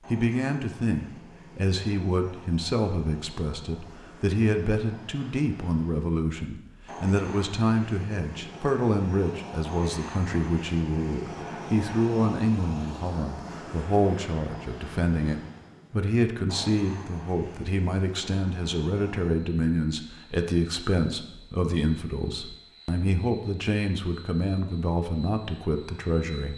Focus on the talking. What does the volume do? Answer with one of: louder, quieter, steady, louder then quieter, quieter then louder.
steady.